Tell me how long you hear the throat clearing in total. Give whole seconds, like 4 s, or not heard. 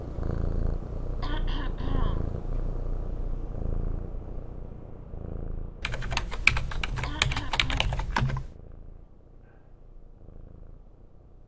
2 s.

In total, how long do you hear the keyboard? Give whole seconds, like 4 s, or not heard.
3 s.